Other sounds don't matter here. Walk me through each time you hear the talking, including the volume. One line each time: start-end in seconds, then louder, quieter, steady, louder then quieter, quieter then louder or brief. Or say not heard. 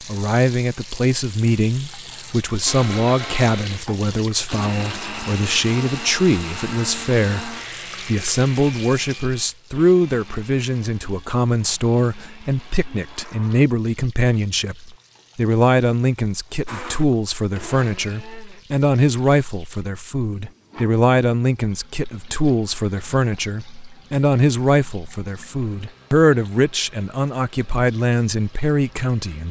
0.1-29.4 steady.